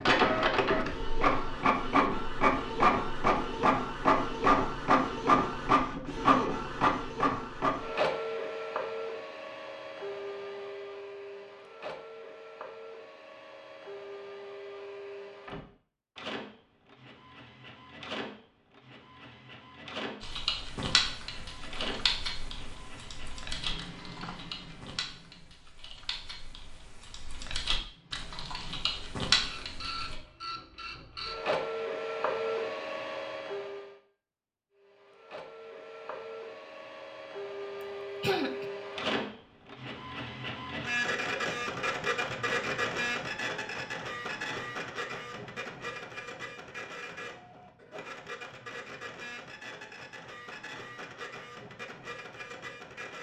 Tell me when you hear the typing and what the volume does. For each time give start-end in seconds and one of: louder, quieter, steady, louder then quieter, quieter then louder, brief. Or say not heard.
20.2-30.1 quieter then louder.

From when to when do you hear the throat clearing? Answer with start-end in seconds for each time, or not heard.
38.2-38.6.